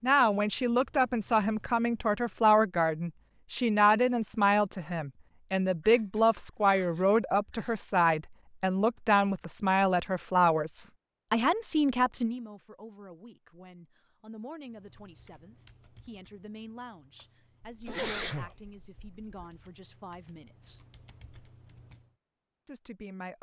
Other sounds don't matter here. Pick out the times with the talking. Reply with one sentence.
The talking can be heard from 0.0 to 20.9 s and from 22.6 to 23.3 s.